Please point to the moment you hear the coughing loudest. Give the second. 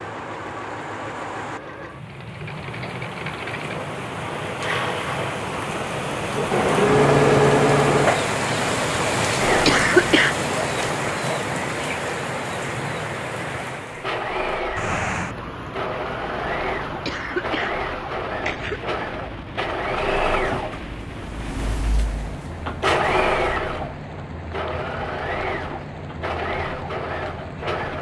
10 s.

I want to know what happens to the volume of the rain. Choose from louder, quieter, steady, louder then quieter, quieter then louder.
louder then quieter.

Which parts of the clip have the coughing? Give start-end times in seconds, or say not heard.
9.7-10.3, 17.1-18.8.